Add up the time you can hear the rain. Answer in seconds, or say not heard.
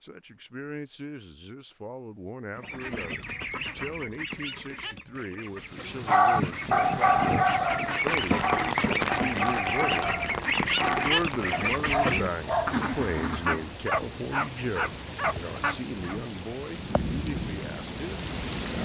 13 s.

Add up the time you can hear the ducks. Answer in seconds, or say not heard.
11 s.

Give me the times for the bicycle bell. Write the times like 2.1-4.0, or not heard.
not heard.